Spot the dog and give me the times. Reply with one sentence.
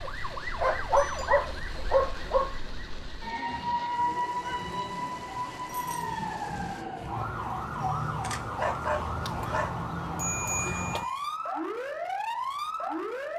You can hear the dog from 0.6 to 2.5 s and from 7.8 to 9.7 s.